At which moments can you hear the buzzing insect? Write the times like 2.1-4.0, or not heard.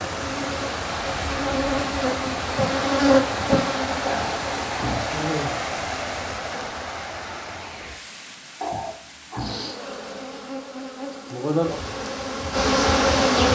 0.1-6.8, 9.3-13.5.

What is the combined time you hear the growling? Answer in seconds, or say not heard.
2 s.